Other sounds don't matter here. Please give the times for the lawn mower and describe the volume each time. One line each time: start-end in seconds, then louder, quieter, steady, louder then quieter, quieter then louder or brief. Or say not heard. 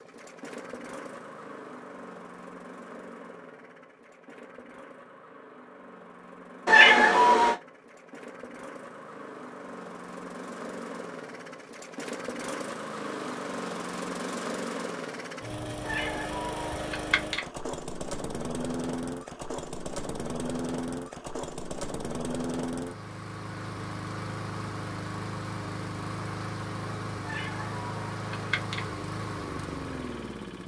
0.0-30.6 louder.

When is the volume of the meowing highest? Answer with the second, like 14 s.
7 s.